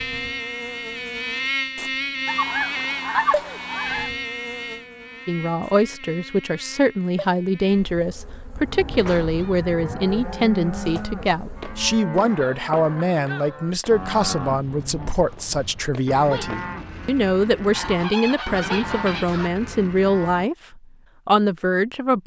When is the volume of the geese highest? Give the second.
3 s.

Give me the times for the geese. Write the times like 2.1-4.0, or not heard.
2.2-4.1, 8.6-10.2, 17.8-19.5.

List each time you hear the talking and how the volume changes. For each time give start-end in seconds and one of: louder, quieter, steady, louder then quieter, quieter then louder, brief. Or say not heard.
5.2-22.2 steady.